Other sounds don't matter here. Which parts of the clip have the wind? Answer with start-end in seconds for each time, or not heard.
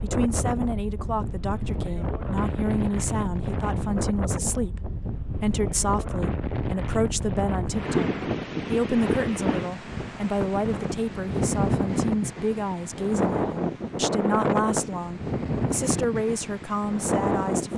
0.0-17.7.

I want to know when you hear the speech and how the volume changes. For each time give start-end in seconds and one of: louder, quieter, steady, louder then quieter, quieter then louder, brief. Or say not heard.
0.0-17.7 steady.